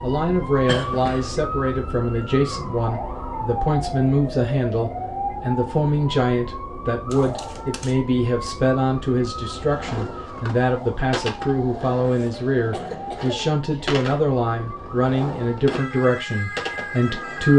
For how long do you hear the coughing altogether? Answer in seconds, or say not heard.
3 s.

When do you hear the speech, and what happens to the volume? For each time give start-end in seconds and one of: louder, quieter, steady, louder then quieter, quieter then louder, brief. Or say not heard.
0.0-17.5 steady.